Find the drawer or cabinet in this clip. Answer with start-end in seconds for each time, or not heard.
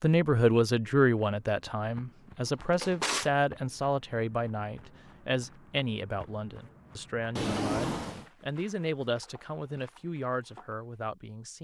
2.5-3.3, 7.3-8.2.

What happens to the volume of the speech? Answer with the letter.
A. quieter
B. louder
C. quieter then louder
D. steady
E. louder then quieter
A.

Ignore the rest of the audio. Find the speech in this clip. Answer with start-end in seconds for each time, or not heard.
0.0-11.5.